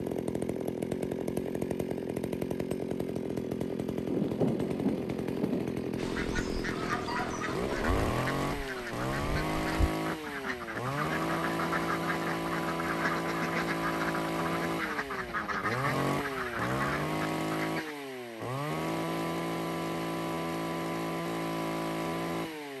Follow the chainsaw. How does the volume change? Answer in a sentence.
The volume of the chainsaw stays about the same.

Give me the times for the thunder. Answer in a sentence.
The thunder can be heard from 4.0 to 5.7 s.